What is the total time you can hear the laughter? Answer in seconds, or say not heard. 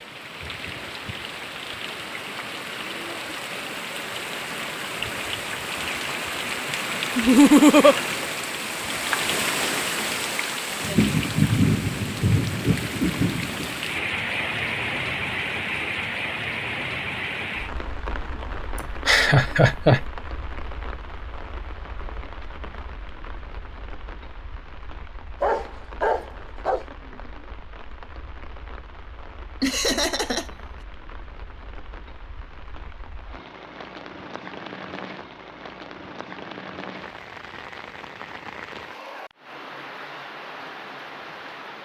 3 s.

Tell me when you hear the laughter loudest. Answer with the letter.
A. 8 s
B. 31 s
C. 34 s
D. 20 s
A.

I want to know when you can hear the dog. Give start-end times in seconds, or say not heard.
25.4-26.9.